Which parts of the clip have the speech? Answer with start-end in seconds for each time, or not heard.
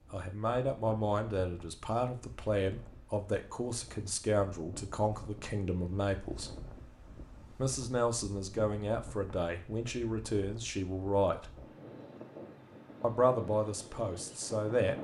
0.1-6.5, 7.5-11.6, 13.0-14.9.